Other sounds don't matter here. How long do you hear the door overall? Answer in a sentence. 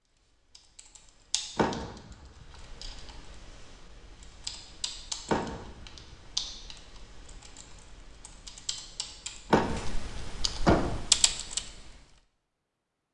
You can hear the door for 3 seconds altogether.